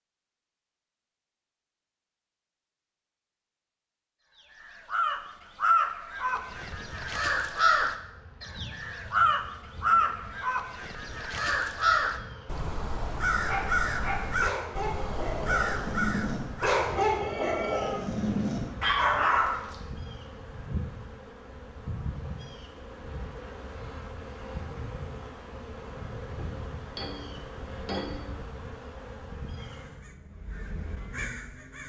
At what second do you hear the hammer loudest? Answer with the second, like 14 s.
28 s.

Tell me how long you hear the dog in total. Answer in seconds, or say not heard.
6 s.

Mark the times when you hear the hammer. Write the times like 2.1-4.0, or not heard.
26.4-28.4.